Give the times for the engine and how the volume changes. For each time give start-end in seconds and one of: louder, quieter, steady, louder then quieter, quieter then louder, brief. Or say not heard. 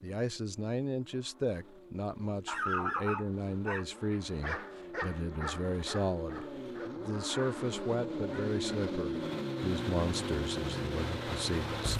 0.0-11.9 louder.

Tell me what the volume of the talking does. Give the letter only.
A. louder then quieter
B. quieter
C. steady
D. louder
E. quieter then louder
C.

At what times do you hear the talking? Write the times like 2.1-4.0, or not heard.
0.0-11.9.